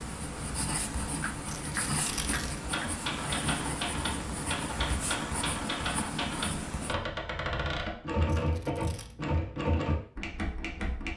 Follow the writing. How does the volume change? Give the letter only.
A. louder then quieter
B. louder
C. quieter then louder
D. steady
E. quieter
D.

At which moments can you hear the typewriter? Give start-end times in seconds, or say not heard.
2.6-11.1.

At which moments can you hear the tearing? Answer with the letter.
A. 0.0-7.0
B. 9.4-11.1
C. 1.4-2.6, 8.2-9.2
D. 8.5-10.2
C.